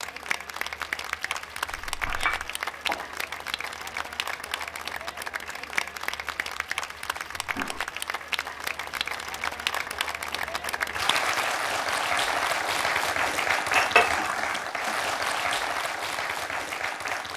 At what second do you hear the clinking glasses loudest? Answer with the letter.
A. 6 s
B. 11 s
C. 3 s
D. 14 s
D.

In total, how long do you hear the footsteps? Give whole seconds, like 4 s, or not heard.
not heard.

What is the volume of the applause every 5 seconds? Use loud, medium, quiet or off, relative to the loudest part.
medium, medium, loud, loud.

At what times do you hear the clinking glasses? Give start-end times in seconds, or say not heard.
1.8-2.4, 13.8-14.2.